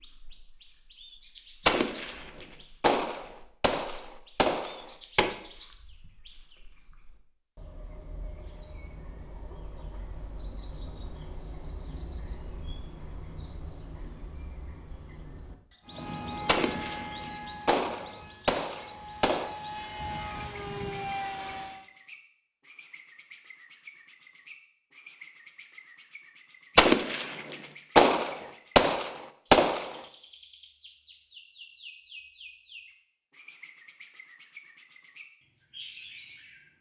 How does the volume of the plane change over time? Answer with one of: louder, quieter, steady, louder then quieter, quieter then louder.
quieter then louder.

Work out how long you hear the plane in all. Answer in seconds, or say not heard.
6 s.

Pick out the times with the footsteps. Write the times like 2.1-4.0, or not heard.
not heard.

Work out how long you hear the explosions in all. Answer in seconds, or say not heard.
10 s.